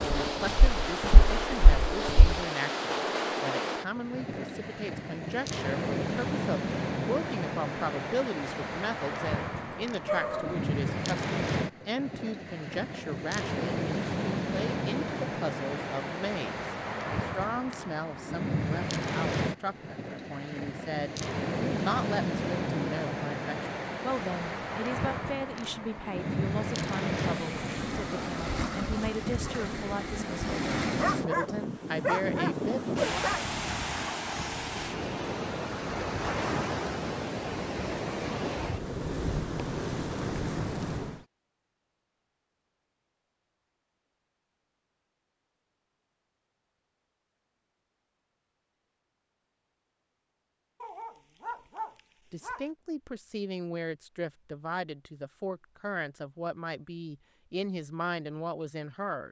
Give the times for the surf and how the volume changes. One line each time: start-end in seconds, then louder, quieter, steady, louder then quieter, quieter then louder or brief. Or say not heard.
0.0-41.2 steady.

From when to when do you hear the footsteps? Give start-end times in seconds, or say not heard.
0.0-2.4.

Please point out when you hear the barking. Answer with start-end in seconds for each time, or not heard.
10.1-10.7, 30.9-33.5, 50.8-52.7.